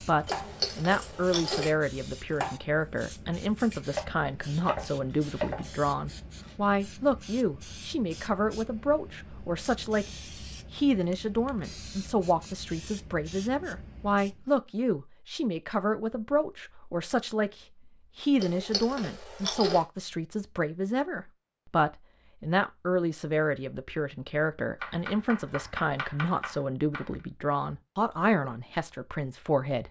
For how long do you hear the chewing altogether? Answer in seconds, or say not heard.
3 s.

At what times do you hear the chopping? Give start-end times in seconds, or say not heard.
0.0-6.5, 24.8-27.1.